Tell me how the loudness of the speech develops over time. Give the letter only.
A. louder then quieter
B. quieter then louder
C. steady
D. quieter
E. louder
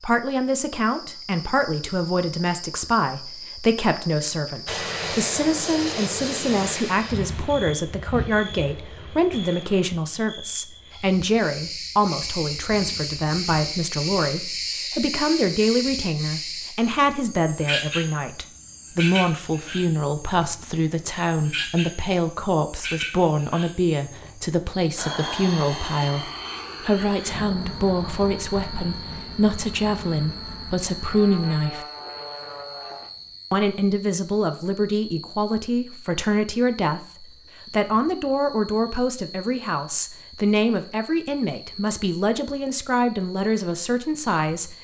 C.